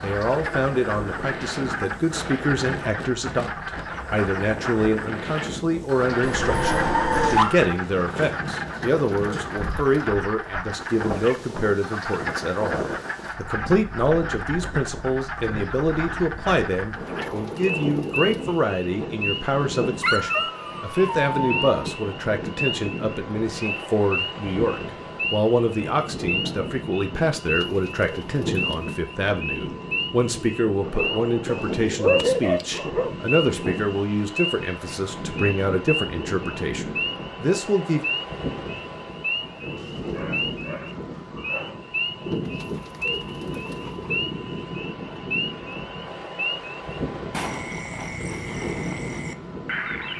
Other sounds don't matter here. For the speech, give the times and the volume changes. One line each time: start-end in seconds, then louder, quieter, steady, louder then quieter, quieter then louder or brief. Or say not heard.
0.0-38.0 steady.